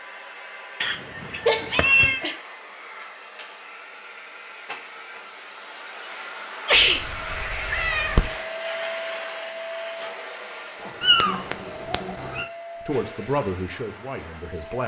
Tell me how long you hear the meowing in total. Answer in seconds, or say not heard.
4 s.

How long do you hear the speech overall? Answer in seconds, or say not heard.
2 s.